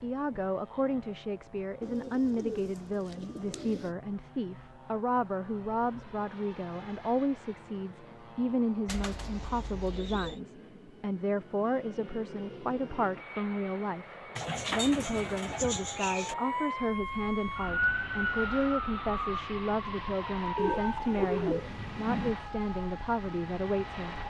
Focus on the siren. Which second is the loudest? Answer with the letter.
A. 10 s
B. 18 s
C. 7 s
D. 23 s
B.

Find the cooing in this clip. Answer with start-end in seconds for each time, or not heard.
1.8-3.9, 8.8-10.4, 14.3-16.4, 20.6-22.4.